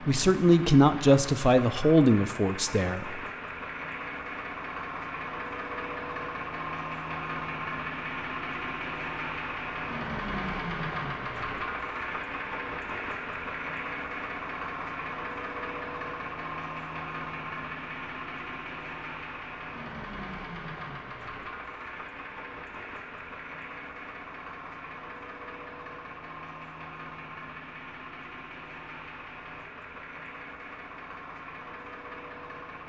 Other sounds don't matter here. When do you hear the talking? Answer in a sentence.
You can hear the talking from 0.1 to 3.2 s.